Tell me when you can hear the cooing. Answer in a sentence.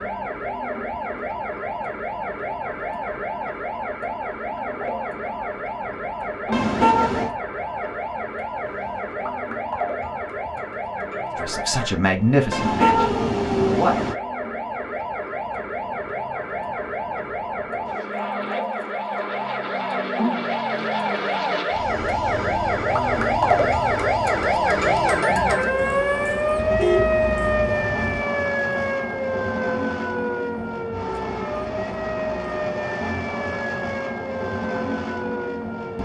The cooing can't be heard in this clip.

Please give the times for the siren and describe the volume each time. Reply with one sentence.
You can hear the siren from 0.0 to 36.0 s, getting louder then quieter.